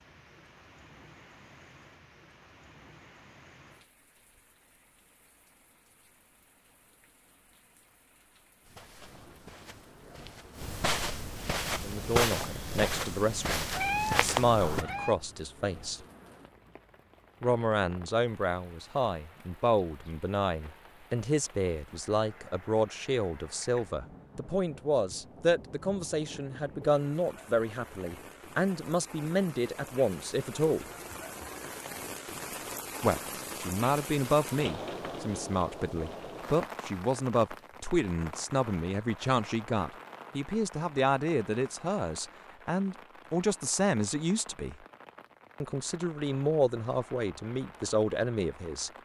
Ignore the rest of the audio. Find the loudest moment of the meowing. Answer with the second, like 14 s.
14 s.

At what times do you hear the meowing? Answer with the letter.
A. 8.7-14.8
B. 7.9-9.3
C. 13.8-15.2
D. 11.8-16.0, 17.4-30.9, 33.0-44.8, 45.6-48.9
C.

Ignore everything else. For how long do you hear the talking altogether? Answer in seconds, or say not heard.
33 s.